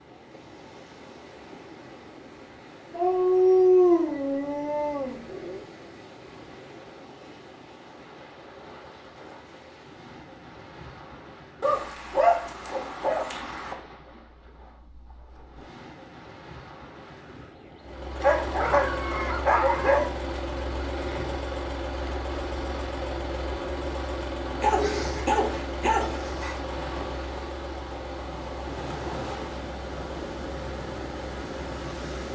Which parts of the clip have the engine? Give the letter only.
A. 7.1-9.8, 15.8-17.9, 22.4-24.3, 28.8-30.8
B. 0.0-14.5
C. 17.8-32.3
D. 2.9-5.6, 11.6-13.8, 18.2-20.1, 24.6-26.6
C.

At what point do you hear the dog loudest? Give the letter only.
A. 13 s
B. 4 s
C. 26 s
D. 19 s
B.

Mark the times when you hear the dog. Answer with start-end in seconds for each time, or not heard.
2.9-5.6, 11.6-13.8, 18.2-20.1, 24.6-26.6.